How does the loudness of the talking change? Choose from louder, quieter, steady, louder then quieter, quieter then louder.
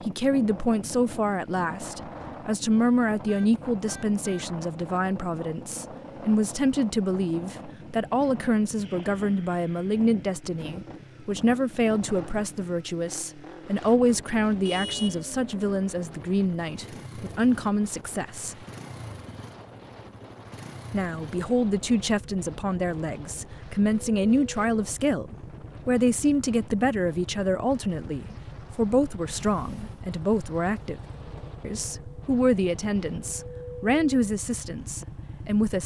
steady.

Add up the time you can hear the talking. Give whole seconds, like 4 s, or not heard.
33 s.